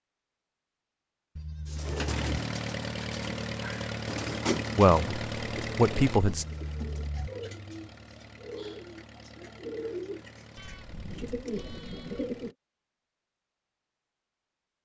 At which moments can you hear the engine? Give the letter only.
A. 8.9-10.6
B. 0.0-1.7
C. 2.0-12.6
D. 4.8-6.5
C.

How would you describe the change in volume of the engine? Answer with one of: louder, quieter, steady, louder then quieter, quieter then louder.
quieter.